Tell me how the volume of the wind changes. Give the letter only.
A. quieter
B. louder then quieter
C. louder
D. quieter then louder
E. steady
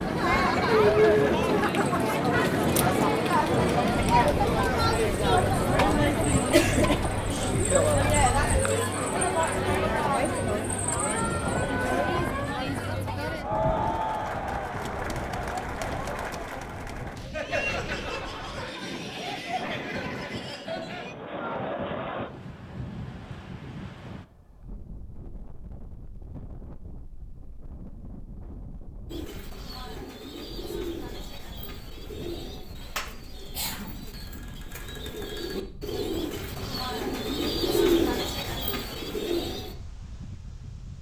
A.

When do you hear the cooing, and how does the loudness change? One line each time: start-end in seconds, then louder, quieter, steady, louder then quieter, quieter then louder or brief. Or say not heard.
29.1-39.8 louder.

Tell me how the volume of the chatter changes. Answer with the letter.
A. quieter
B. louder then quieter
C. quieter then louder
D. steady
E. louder
A.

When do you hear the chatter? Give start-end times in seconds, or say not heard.
0.0-22.3.